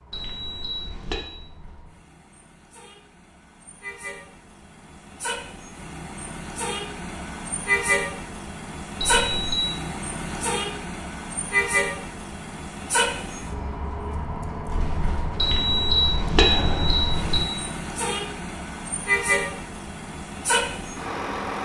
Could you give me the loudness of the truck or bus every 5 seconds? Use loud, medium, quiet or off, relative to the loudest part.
quiet, loud, loud, loud, loud.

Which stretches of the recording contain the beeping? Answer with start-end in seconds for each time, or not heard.
0.1-1.3, 9.0-9.6, 15.4-17.4.